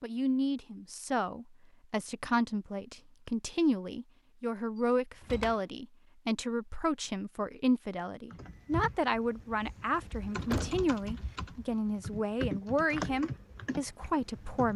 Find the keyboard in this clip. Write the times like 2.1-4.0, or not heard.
8.3-14.7.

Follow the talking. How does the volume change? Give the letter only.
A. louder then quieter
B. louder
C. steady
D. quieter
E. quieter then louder
C.